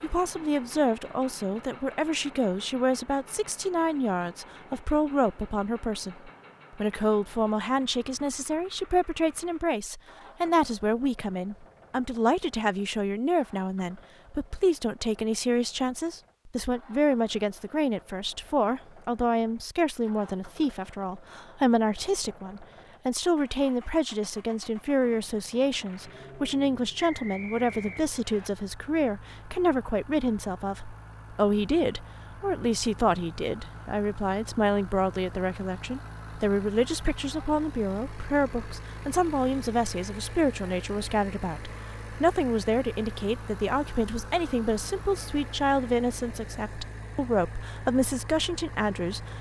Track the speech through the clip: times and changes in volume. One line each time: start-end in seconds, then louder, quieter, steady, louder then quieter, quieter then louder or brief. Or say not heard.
0.0-49.3 steady.